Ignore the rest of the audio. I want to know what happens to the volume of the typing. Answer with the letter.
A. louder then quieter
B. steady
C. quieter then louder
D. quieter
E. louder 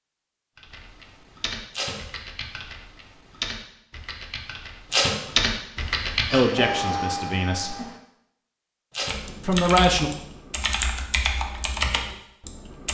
E.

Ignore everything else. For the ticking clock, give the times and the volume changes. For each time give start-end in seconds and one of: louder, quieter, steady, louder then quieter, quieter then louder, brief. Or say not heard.
not heard.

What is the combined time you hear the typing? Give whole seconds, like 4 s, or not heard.
10 s.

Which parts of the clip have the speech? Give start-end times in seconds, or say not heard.
6.3-7.8, 9.4-10.1.